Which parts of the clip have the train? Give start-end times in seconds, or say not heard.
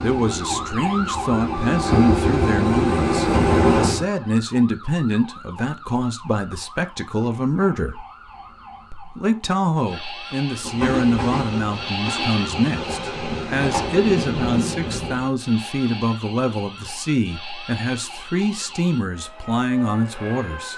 0.0-4.0, 10.6-15.3.